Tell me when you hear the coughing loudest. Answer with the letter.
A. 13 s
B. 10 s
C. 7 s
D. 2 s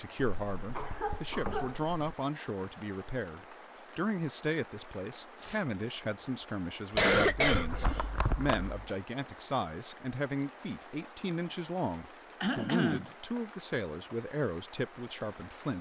C.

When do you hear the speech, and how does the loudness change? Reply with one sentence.
The speech can be heard from 0.0 to 15.7 s, at a steady volume.